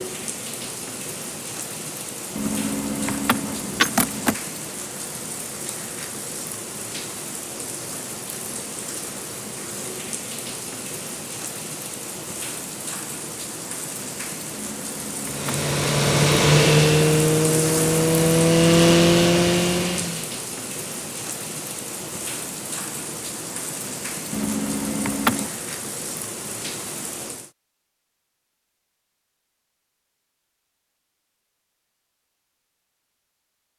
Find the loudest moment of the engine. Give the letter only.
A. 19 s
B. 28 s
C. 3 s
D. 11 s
A.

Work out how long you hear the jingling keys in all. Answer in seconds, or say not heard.
4 s.